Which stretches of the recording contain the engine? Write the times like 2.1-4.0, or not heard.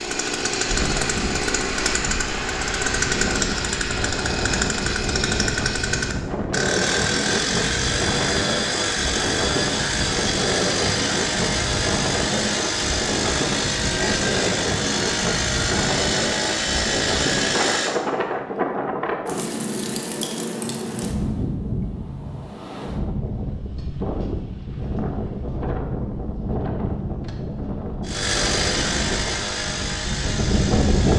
0.0-18.0, 28.1-31.1.